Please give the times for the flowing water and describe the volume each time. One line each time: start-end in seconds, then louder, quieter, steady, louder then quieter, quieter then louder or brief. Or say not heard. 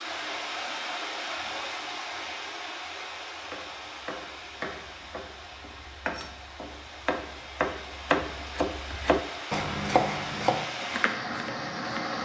0.0-12.2 quieter then louder.